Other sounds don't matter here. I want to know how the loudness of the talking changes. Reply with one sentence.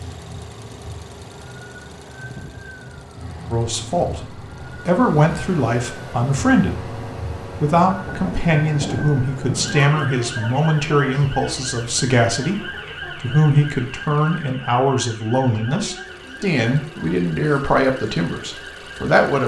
The loudness of the talking stays about the same.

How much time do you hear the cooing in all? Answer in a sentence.
The cooing can't be heard in this clip.